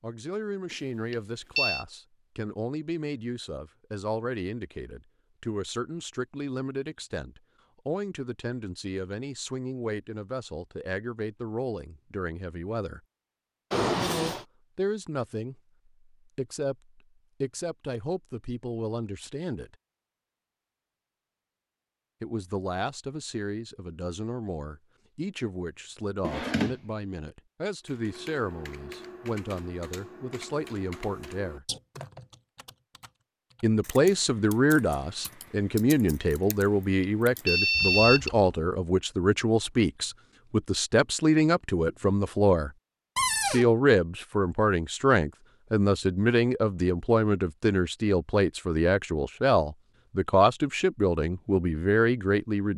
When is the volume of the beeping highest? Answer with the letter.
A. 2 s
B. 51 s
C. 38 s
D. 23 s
C.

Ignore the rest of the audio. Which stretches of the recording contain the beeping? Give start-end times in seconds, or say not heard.
0.7-1.9, 37.0-38.3.